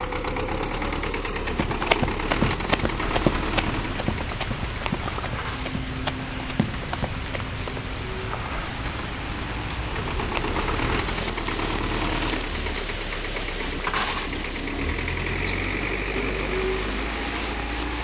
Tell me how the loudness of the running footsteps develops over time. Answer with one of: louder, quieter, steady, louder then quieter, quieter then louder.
quieter.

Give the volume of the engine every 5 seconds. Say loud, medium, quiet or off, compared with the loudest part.
loud, medium, loud, loud.